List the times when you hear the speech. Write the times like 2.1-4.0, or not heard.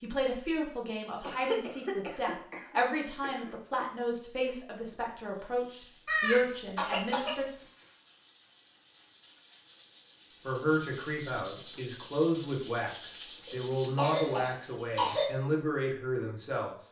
0.0-7.5, 10.4-16.8.